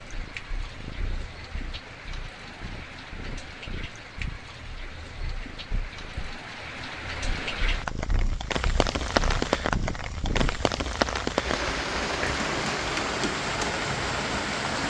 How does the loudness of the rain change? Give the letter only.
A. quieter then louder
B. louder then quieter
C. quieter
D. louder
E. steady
D.